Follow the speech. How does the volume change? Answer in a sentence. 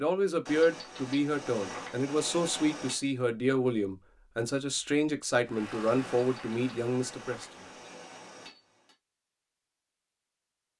The volume of the speech stays about the same.